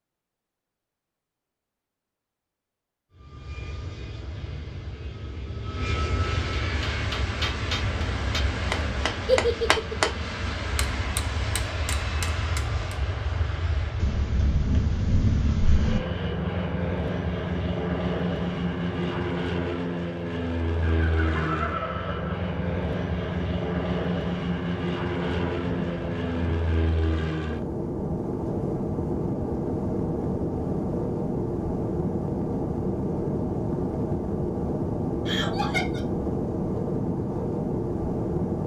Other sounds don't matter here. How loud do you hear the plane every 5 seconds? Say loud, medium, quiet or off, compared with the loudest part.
quiet, medium, medium, loud, loud, loud, loud, loud.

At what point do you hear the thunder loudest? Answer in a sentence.
The loudest moment of the thunder is at 15 seconds.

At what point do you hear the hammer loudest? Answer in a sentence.
The volume of the hammer peaks at 10 seconds.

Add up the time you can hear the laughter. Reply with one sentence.
The laughter can be heard for 3 seconds in total.